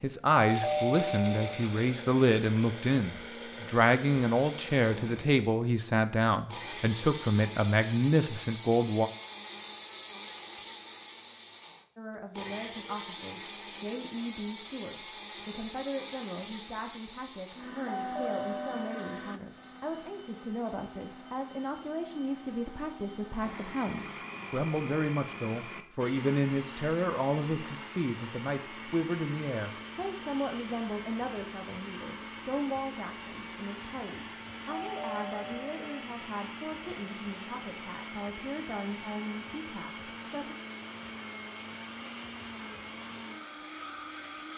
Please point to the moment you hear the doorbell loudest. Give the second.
1 s.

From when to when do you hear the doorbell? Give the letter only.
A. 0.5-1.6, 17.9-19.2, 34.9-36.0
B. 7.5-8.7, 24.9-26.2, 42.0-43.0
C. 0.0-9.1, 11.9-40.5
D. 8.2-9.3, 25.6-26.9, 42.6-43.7
A.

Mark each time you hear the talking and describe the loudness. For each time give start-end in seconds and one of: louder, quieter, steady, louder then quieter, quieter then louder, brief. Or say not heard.
0.0-9.1 steady
11.9-40.5 louder then quieter.